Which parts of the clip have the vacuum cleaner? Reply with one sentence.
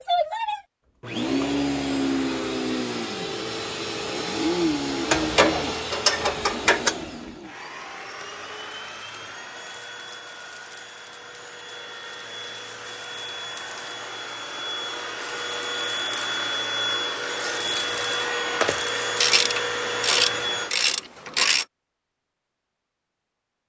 The vacuum cleaner can be heard from 0.0 to 20.8 s.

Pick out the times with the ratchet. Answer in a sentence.
You can hear the ratchet from 5.0 to 7.0 s and from 19.1 to 21.6 s.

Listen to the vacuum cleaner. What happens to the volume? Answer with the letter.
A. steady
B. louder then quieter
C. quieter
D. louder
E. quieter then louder
E.